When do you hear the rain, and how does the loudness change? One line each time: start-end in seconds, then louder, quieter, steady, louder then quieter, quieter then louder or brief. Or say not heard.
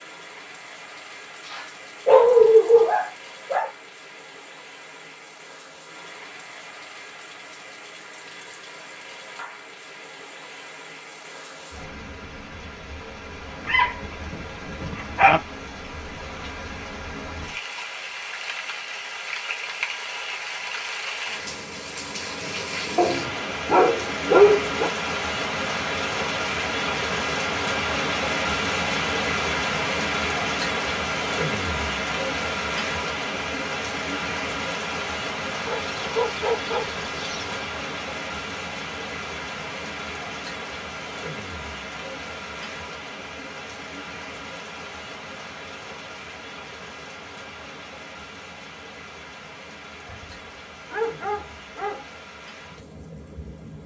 0.0-53.8 louder then quieter.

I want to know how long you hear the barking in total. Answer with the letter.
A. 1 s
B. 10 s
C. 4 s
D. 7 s
B.